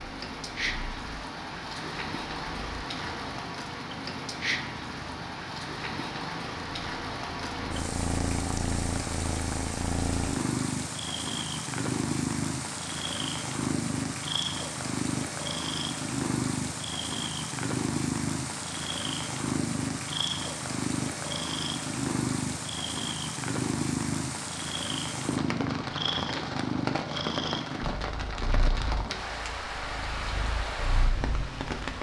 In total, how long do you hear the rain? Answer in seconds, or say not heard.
32 s.